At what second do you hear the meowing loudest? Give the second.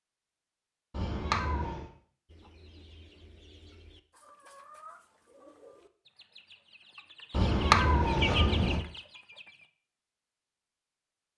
8 s.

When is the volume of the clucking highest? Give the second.
8 s.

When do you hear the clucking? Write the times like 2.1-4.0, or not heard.
2.2-9.7.